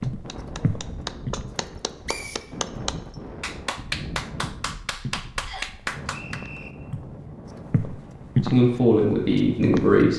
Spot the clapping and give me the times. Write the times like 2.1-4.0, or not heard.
0.0-6.5.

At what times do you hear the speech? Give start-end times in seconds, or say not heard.
8.4-10.1.